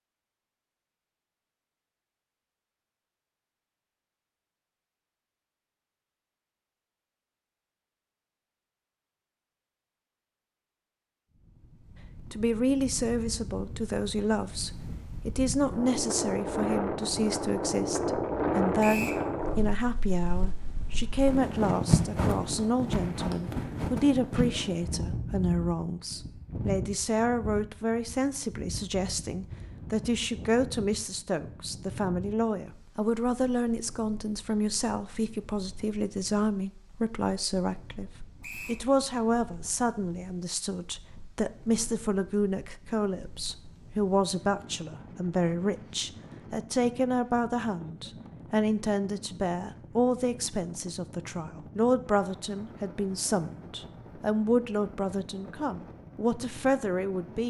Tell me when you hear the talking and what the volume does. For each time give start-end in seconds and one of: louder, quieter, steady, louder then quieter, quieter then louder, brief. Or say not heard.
12.3-57.4 steady.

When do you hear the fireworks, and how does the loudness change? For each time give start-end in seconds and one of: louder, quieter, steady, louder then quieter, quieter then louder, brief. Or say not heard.
not heard.